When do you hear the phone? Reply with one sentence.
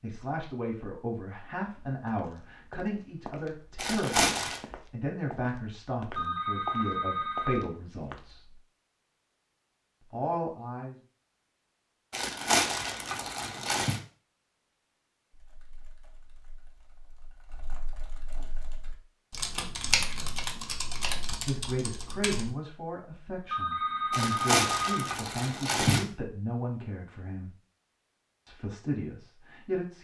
The phone can be heard from 6.1 to 7.7 s and from 23.4 to 24.9 s.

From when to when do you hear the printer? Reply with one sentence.
You can't hear the printer here.